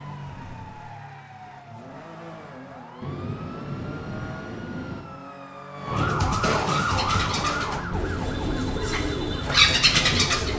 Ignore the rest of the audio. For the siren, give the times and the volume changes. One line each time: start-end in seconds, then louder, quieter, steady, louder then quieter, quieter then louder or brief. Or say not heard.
0.0-10.5 louder then quieter.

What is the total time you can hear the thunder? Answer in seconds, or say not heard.
2 s.